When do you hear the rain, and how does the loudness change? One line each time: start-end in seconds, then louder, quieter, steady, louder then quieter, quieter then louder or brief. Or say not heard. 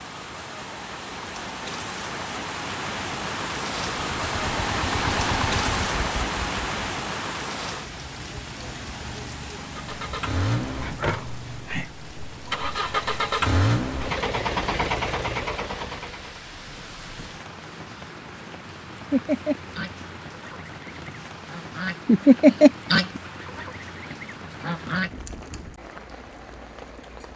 0.0-27.3 quieter.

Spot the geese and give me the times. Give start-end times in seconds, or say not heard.
19.1-25.1.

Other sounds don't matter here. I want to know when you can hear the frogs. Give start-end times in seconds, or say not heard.
not heard.